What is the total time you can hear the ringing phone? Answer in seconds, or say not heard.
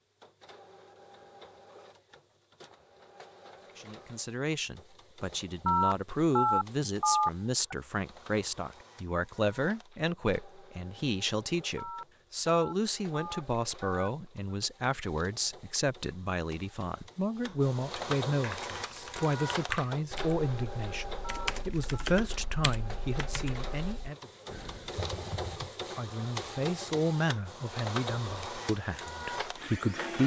6 s.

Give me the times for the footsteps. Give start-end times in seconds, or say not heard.
not heard.